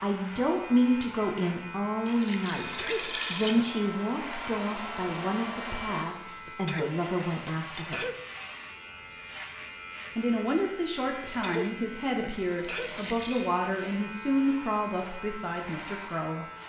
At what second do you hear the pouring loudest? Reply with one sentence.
The volume of the pouring peaks at 3 seconds.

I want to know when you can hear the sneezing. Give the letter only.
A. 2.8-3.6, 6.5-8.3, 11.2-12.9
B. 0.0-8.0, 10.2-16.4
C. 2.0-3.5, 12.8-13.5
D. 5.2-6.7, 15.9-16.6
A.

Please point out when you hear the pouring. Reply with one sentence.
You can hear the pouring from 2.0 to 3.5 s and from 12.8 to 13.5 s.